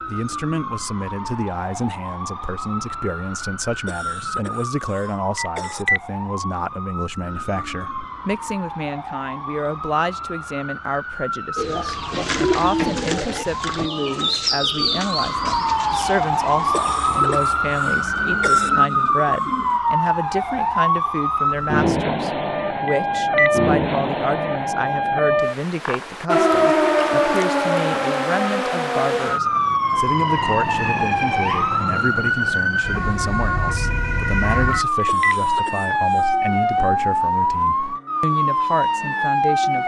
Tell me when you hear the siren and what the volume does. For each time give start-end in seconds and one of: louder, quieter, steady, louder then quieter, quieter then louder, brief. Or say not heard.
0.0-39.8 louder.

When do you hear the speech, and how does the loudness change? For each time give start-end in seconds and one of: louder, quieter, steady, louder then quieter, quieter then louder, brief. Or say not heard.
0.1-39.8 steady.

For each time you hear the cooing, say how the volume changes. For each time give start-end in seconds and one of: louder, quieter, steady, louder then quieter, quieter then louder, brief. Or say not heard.
11.6-19.8 quieter.